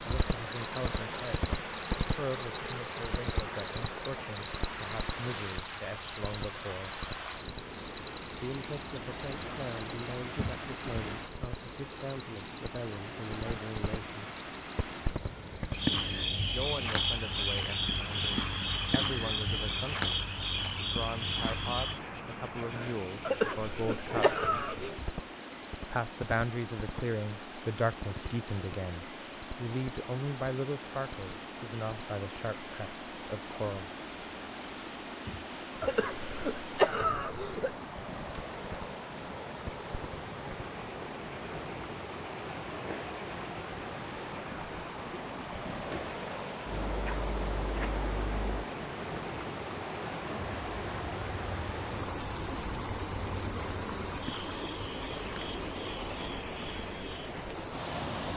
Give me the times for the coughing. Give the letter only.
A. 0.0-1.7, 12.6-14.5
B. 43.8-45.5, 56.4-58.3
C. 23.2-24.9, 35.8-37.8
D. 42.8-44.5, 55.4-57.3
C.